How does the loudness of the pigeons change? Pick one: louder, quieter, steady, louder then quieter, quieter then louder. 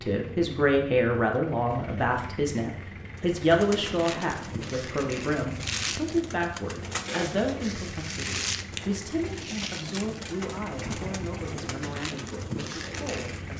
steady.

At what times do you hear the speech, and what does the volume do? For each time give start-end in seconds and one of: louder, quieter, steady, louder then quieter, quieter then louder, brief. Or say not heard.
0.0-13.5 quieter.